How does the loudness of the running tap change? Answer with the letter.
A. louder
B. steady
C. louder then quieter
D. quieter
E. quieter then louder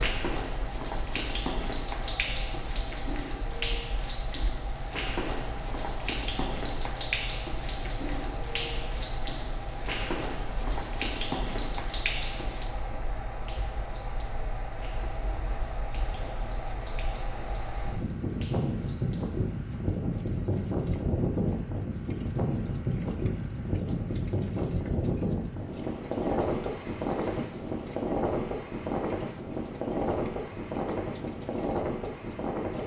D.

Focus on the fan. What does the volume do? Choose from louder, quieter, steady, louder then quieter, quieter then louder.
louder.